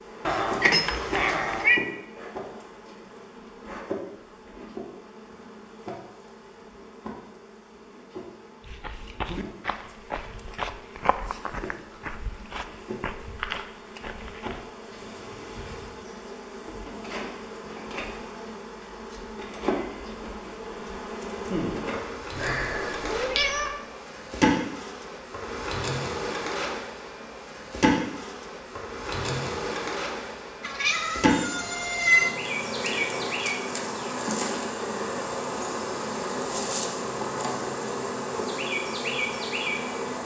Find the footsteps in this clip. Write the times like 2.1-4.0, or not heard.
8.6-14.7.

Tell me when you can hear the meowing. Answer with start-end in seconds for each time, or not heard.
0.2-1.8, 22.4-23.8, 30.6-32.4.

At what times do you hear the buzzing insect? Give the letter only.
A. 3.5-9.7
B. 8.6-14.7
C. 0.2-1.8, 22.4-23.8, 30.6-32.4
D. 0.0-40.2
D.